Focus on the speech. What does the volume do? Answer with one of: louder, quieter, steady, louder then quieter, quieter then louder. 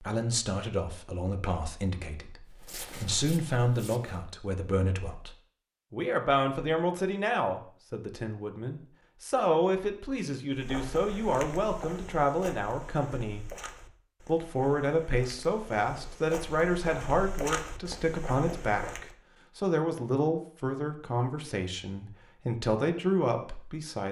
steady.